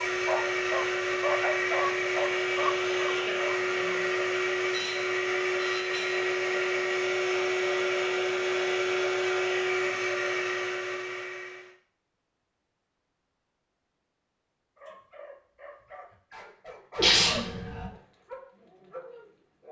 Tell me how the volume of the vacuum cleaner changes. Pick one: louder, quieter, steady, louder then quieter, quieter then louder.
steady.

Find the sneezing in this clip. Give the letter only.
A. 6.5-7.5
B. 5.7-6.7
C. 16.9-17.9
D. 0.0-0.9
C.